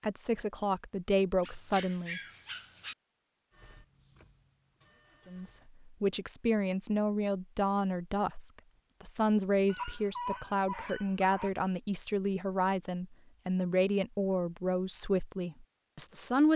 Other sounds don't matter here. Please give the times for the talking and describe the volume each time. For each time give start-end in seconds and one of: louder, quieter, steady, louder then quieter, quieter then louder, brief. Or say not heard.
0.0-2.2 brief
5.2-16.5 steady.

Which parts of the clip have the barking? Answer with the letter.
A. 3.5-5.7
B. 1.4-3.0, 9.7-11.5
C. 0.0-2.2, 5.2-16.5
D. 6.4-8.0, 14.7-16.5
B.